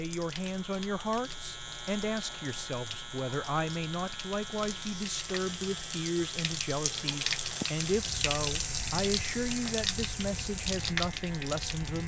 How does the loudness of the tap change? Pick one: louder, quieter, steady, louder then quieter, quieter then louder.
louder.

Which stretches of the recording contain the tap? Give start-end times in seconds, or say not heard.
0.0-12.0.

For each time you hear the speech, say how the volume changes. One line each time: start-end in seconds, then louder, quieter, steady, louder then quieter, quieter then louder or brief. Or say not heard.
0.0-12.0 steady.